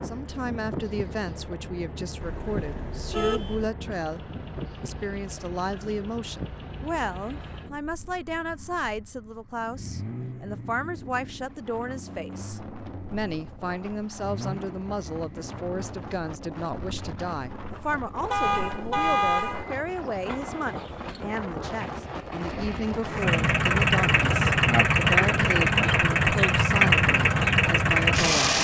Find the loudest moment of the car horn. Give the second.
19 s.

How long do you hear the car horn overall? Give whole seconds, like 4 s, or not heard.
3 s.